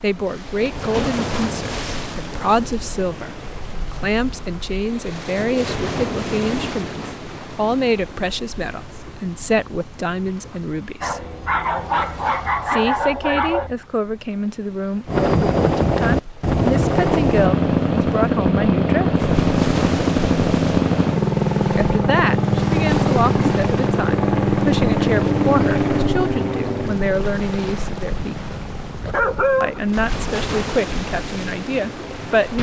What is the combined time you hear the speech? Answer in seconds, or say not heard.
27 s.